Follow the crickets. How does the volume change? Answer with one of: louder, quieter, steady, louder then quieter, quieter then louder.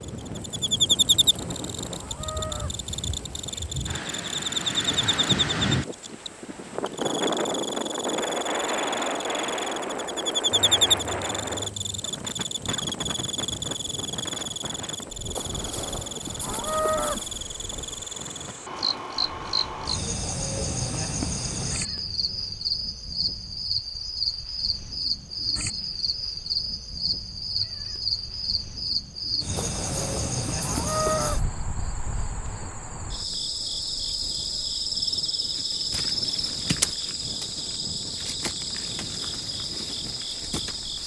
steady.